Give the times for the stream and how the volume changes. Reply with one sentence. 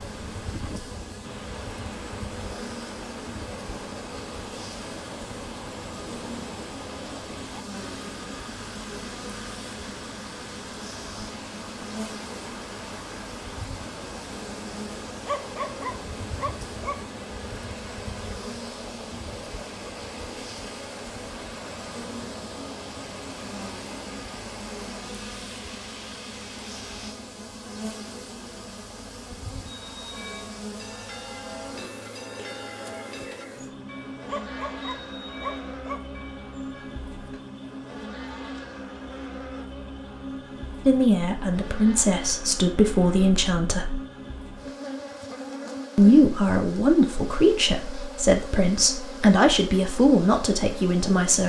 The stream can be heard from 0.0 to 27.1 s, at a steady volume.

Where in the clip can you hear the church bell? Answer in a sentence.
You can hear the church bell from 29.6 to 37.0 s.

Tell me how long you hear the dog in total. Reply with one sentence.
The dog can be heard for 4 seconds in total.